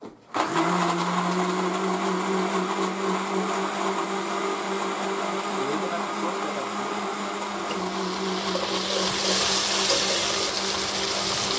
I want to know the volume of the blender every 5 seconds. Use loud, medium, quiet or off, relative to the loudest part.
loud, loud, medium.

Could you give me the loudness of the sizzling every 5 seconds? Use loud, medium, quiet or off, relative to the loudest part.
off, loud, loud.